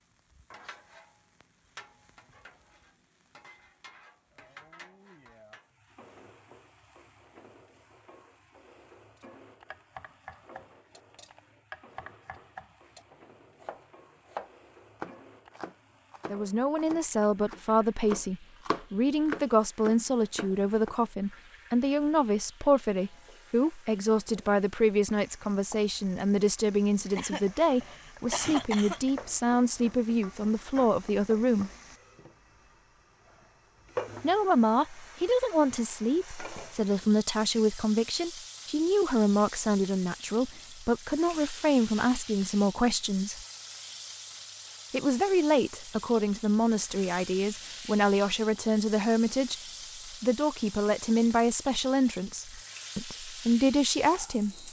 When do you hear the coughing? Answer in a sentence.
The coughing can be heard from 27.1 to 29.1 s.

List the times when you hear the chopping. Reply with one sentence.
The chopping can be heard from 9.2 to 20.9 s.